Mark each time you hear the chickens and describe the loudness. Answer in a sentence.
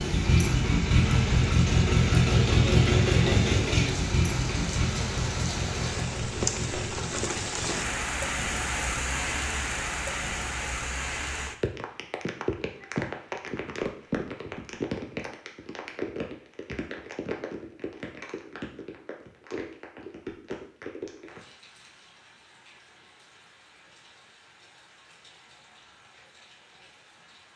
The chickens can't be heard in this clip.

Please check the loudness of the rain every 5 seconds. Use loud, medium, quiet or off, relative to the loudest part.
medium, loud, loud, medium, quiet, quiet.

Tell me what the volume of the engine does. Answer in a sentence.
The volume of the engine goes down.